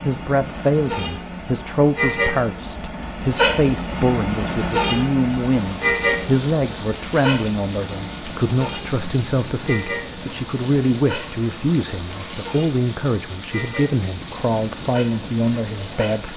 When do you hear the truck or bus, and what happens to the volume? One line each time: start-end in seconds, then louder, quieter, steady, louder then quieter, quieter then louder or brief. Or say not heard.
0.0-16.3 quieter.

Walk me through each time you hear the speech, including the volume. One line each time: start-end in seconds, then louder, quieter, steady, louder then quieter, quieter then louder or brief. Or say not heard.
0.0-16.3 steady.